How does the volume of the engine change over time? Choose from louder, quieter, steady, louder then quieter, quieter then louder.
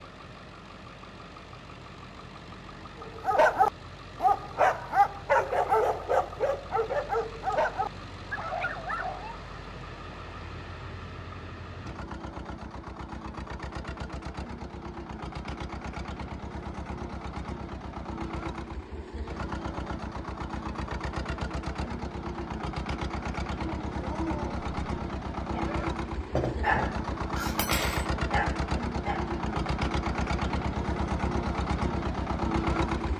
louder.